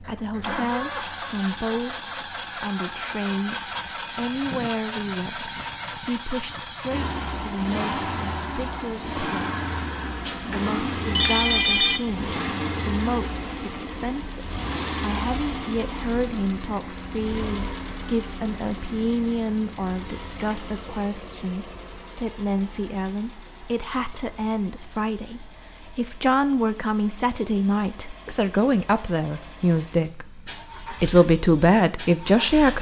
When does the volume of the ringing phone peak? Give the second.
12 s.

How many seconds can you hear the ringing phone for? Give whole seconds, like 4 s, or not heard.
2 s.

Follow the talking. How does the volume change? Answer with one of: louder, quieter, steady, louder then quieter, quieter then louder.
louder.